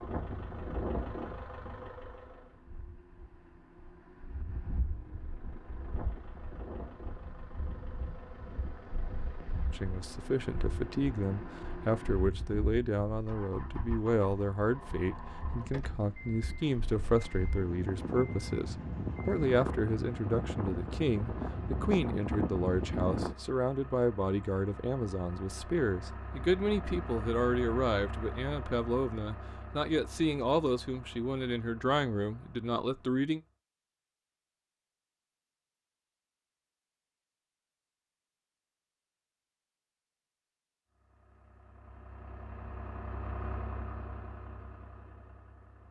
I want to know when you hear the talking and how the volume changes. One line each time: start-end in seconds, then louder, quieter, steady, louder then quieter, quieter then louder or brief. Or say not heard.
9.7-33.4 steady.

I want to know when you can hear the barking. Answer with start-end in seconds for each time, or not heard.
not heard.